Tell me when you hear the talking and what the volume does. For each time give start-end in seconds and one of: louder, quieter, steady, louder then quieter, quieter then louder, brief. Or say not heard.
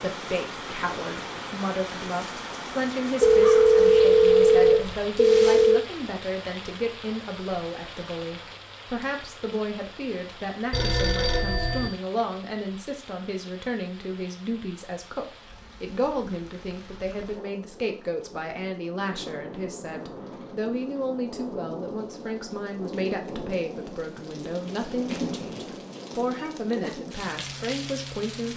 0.0-28.5 steady.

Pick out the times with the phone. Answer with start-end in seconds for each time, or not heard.
3.2-5.8, 10.7-11.9, 24.6-26.6.